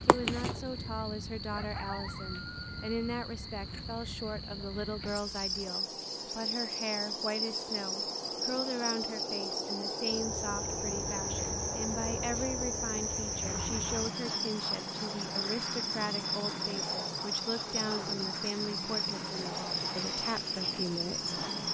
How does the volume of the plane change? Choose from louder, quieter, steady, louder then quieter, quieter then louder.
louder.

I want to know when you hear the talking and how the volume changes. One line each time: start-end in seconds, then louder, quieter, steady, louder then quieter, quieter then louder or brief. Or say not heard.
0.0-21.4 steady.